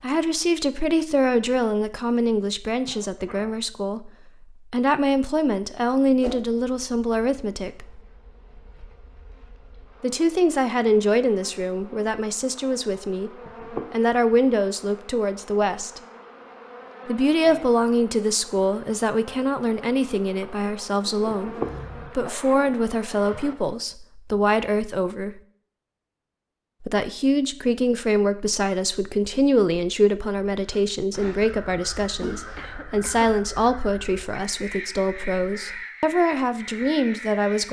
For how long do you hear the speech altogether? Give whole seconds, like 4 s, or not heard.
33 s.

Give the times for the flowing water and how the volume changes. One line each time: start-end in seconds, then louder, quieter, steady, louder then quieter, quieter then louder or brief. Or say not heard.
not heard.